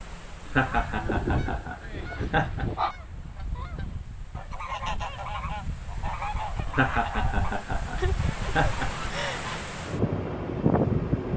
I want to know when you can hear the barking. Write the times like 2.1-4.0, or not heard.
1.1-3.0.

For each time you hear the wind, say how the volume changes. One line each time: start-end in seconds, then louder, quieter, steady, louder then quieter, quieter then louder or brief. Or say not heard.
0.0-11.3 louder.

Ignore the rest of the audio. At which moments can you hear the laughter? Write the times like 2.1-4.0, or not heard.
0.5-2.6, 6.7-9.1.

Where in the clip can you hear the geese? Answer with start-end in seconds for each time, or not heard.
0.5-9.7.